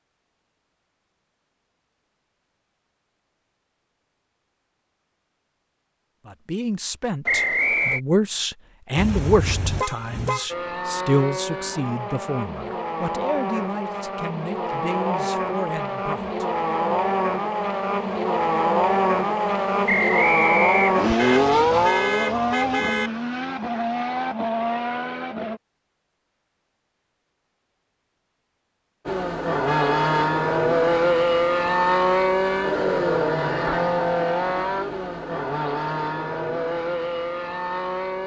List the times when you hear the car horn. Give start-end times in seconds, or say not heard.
8.9-10.5, 21.1-23.1, 29.6-30.2.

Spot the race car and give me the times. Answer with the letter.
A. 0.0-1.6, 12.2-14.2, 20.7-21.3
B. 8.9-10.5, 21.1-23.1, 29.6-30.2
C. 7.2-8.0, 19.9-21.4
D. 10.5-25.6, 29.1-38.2
D.